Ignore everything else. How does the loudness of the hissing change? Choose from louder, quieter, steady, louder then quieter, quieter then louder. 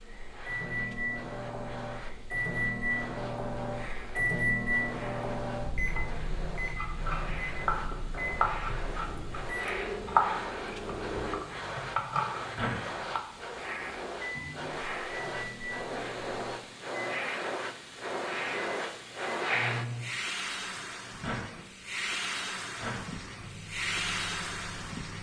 louder.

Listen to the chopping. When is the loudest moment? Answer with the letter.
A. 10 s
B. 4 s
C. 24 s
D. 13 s
A.